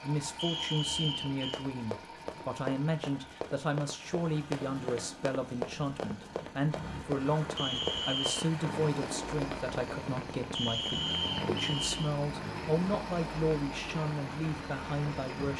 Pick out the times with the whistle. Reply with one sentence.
You can hear the whistle from 0.3 to 1.4 s, from 7.5 to 8.4 s and from 10.6 to 12.0 s.